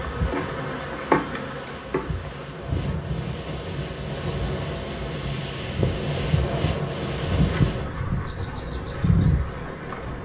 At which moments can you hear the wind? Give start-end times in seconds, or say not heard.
0.0-10.2.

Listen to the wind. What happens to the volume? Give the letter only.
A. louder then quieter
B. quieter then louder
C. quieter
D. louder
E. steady
A.